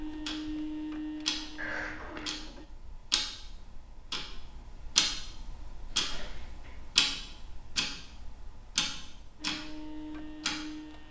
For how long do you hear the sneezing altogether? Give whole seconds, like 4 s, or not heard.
2 s.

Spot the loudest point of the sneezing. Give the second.
2 s.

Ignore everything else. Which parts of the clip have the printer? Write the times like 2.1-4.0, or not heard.
0.0-2.6, 9.4-11.0.